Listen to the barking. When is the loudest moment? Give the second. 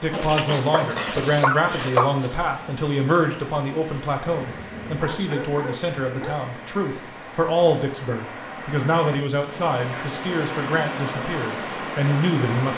2 s.